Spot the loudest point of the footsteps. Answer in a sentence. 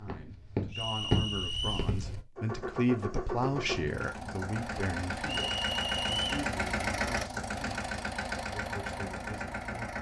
The loudest moment of the footsteps is at 1 second.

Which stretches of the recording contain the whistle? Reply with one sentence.
You can hear the whistle from 0.7 to 1.9 s and from 5.2 to 6.2 s.